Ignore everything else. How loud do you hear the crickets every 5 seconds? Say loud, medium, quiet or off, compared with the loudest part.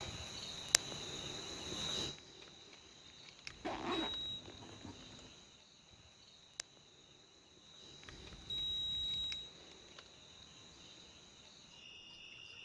loud, medium, medium.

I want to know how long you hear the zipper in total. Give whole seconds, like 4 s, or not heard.
2 s.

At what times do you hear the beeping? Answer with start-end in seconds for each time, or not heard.
3.5-4.5, 8.1-9.5.